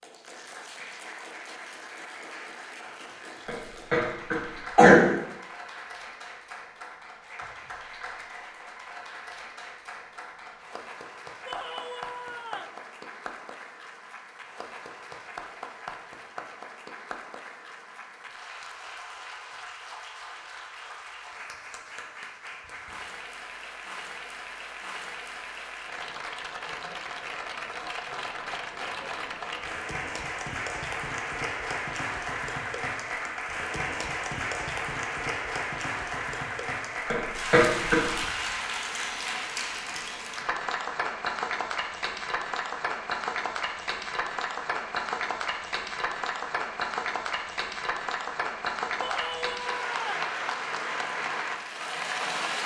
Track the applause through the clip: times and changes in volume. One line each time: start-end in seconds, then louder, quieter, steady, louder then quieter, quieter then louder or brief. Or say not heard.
0.0-52.6 louder.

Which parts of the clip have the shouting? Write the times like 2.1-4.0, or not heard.
11.4-12.8, 49.0-50.3.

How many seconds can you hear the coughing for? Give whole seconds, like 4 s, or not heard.
3 s.